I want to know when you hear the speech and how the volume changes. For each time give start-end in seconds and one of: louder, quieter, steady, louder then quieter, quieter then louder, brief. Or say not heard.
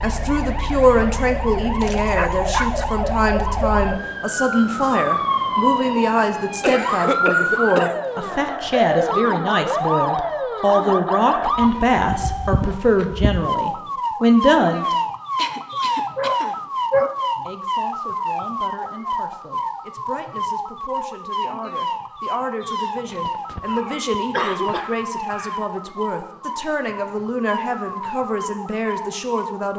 0.0-14.9 steady
17.4-29.7 louder.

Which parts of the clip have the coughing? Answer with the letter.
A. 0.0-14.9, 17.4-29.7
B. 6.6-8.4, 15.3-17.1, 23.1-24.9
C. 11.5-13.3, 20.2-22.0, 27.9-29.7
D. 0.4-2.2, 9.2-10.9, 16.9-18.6
B.